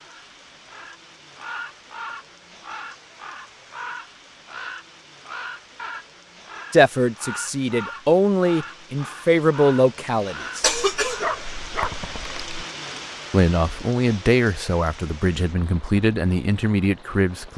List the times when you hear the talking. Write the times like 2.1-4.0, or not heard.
6.7-10.7, 13.3-17.5.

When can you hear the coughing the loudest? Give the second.
11 s.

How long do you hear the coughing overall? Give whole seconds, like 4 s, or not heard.
2 s.